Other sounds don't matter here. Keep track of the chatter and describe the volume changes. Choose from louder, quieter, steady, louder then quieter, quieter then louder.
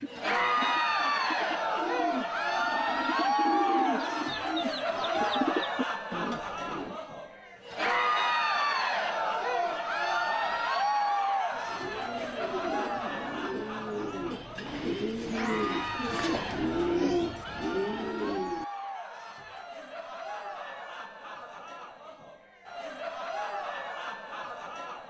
quieter.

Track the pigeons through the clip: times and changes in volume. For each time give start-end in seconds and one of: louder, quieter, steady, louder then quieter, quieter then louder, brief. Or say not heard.
0.0-7.0 louder
11.5-18.6 louder.